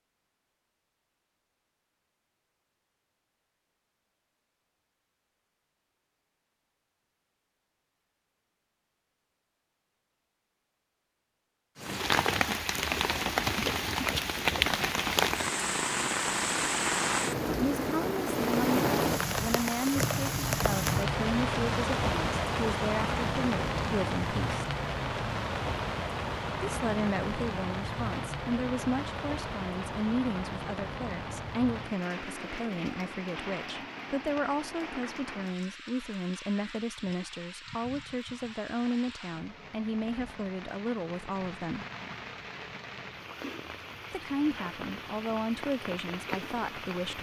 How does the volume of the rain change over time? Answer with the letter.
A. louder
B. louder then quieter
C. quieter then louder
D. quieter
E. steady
D.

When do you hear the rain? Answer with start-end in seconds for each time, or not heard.
11.8-47.1.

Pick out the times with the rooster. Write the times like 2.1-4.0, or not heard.
not heard.